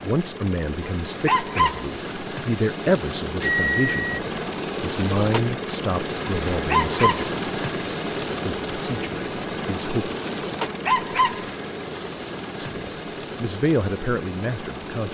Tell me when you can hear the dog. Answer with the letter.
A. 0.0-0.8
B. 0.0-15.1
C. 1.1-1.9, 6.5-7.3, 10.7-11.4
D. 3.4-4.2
C.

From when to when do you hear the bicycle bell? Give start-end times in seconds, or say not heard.
3.4-4.2.